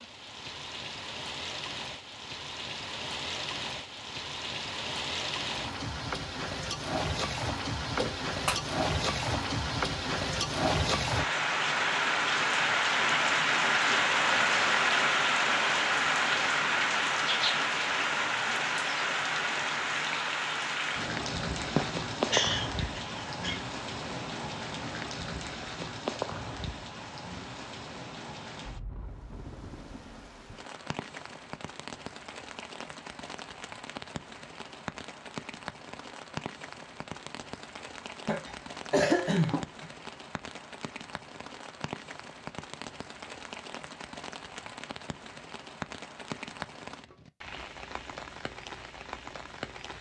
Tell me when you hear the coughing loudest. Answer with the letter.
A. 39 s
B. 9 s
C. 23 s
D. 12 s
A.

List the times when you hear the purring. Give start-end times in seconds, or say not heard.
not heard.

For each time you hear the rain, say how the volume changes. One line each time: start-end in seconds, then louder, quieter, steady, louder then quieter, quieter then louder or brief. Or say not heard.
0.0-49.9 louder then quieter.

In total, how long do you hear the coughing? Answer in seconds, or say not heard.
4 s.